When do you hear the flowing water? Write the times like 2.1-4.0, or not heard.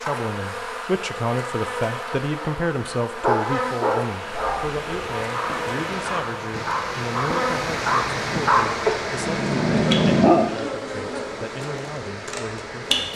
3.8-13.1.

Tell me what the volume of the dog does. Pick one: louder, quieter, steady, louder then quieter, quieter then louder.
quieter then louder.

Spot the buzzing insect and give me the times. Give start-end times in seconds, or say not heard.
0.0-13.1.